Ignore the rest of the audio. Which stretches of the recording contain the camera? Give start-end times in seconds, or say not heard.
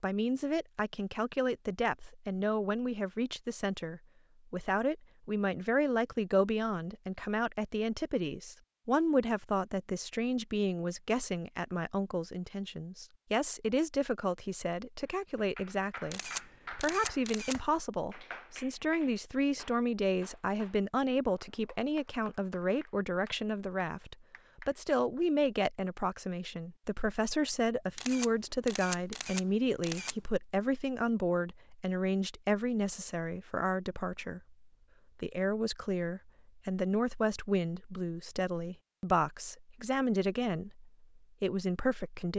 16.1-17.6, 27.9-30.1.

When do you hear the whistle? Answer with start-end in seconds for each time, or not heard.
not heard.